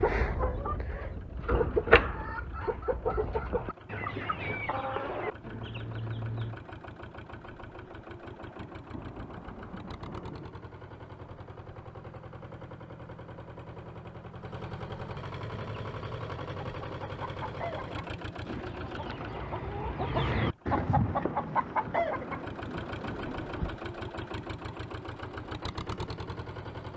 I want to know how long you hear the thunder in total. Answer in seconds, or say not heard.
5 s.